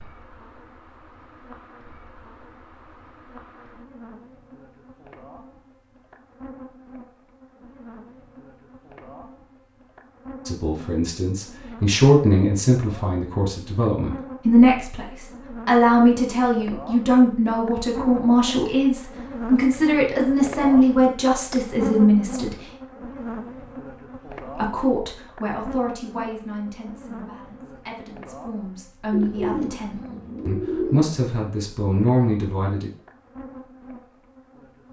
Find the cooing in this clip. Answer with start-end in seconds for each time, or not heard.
29.1-31.1.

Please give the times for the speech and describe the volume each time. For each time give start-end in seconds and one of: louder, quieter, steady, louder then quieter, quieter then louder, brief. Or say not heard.
10.4-22.6 steady
24.5-32.9 quieter then louder.